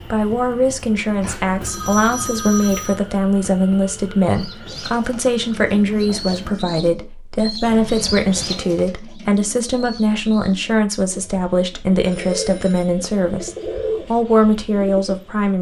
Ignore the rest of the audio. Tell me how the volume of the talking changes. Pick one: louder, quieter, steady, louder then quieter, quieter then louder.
steady.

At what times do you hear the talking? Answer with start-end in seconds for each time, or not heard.
0.1-15.5.